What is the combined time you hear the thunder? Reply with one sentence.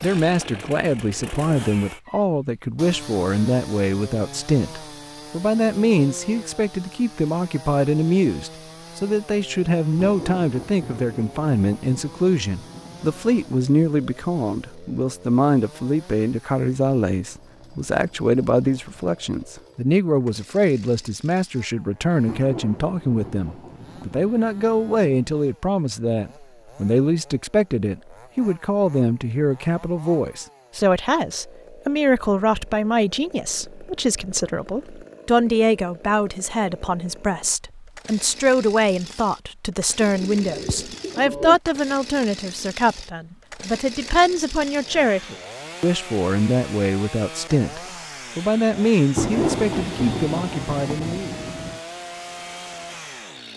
You can hear the thunder for 9 seconds altogether.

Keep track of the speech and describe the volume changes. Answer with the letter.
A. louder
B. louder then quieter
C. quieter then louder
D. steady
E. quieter
D.